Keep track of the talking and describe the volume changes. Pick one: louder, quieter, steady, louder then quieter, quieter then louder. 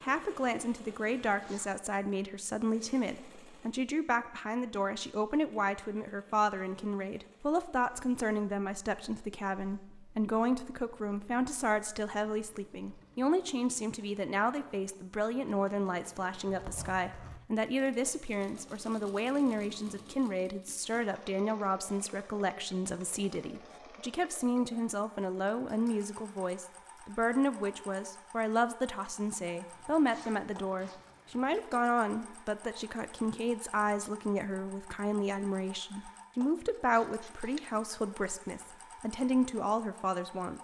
steady.